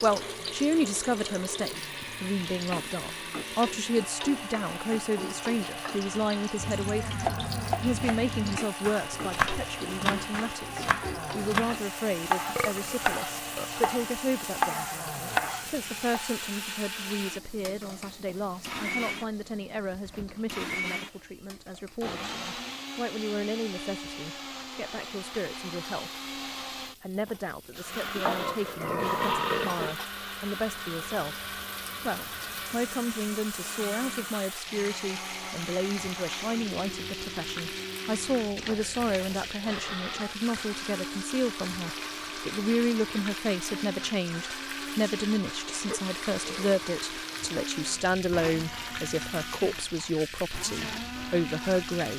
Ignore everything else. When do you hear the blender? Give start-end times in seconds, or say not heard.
0.0-52.1.